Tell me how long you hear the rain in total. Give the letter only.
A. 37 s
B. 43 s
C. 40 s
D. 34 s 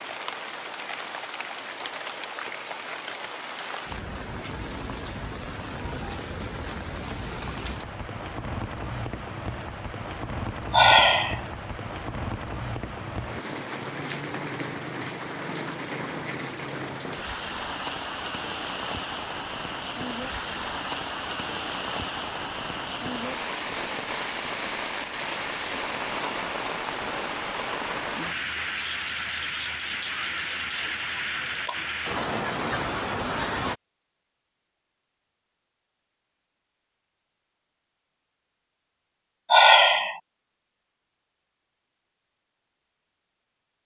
D.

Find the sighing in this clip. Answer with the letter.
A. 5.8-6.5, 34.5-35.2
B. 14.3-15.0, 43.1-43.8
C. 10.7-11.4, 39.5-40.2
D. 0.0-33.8
C.